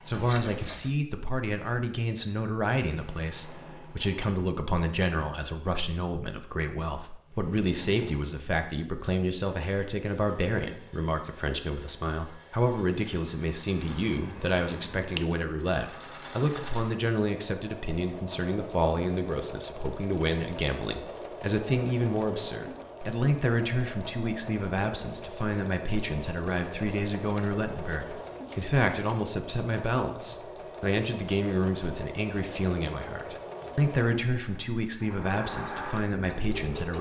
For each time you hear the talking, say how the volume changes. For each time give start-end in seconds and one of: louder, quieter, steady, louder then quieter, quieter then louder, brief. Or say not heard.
0.1-36.9 steady.